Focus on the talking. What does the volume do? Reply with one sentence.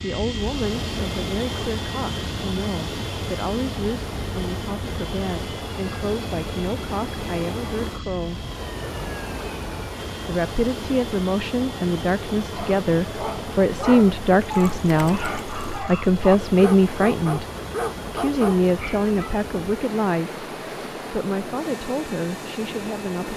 The loudness of the talking goes up, then down.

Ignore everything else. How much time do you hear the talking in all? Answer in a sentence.
The talking can be heard for 21 seconds in total.